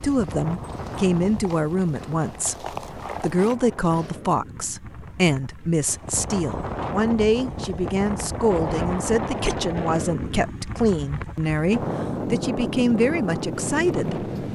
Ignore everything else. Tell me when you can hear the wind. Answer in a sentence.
You can hear the wind from 0.0 to 14.5 s.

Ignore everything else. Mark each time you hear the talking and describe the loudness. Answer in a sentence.
The talking can be heard from 0.0 to 14.3 s, at a steady volume.